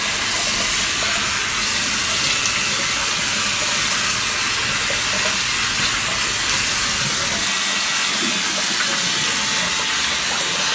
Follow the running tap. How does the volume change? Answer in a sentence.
The loudness of the running tap stays about the same.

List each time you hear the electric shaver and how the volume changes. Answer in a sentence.
You can hear the electric shaver from 0.0 to 10.7 s, at a steady volume.